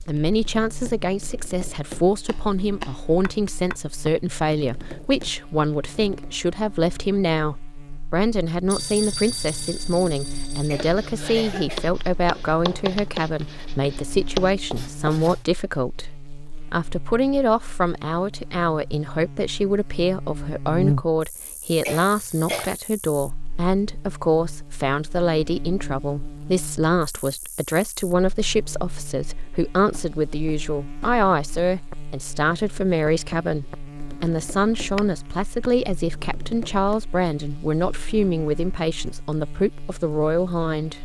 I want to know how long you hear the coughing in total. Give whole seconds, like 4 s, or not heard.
2 s.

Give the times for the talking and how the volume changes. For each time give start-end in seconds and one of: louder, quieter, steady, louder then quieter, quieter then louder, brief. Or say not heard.
0.1-41.0 steady.